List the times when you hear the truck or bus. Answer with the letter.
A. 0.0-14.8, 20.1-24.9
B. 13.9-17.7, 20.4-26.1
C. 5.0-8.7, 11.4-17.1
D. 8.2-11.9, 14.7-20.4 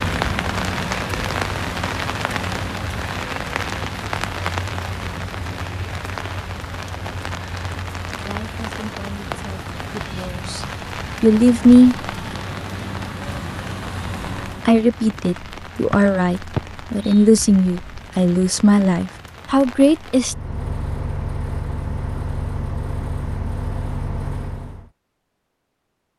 A.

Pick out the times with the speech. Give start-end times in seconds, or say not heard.
8.2-11.9, 14.7-20.4.